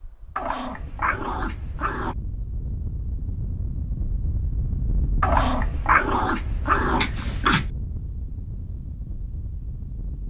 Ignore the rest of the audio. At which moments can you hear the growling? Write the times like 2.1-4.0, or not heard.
0.3-2.1, 5.2-7.7.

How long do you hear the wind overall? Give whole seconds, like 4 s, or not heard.
10 s.